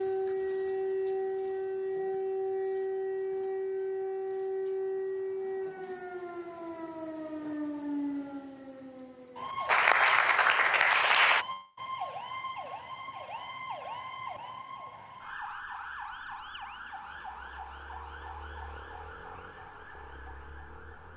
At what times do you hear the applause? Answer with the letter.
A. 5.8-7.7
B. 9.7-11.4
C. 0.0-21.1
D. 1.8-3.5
B.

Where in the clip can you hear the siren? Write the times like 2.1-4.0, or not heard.
0.0-21.1.